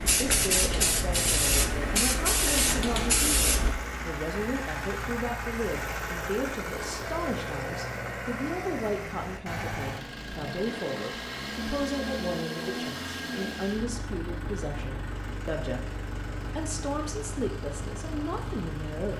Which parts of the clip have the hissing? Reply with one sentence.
The hissing can be heard from 0.0 to 3.8 s.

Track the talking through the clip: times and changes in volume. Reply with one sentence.
The talking can be heard from 0.1 to 19.1 s, at a steady volume.